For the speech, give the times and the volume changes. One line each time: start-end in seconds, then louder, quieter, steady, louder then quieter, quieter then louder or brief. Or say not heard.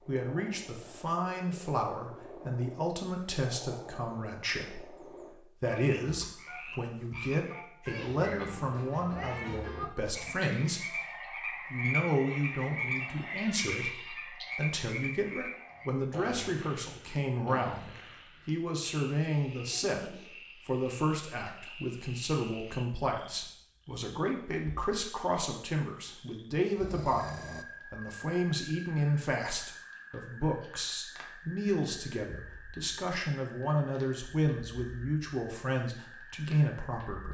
0.1-37.2 steady.